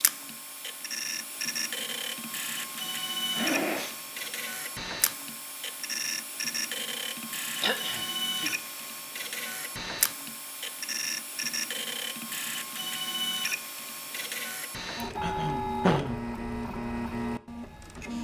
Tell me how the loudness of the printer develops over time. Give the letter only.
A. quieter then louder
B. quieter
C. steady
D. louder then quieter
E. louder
C.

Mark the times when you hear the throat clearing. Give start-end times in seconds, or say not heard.
3.3-4.0, 7.5-8.6, 15.2-16.1.